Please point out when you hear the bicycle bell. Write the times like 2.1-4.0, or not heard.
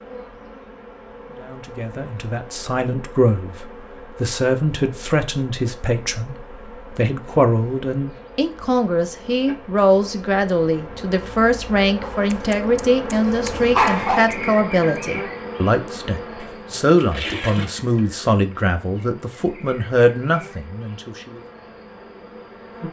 not heard.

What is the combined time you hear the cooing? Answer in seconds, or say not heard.
not heard.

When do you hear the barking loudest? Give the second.
14 s.